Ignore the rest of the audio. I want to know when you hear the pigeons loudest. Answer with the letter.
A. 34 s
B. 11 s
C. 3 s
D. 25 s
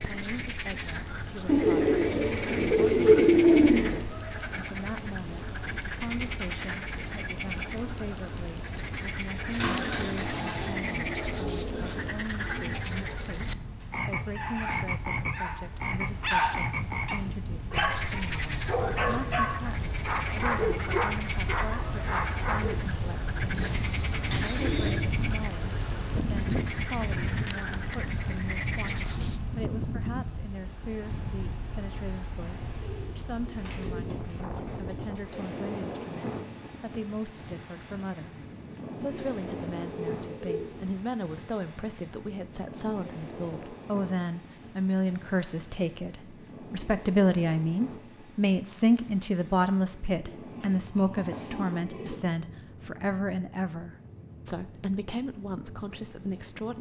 C.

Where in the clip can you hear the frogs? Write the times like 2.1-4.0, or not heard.
0.0-29.4.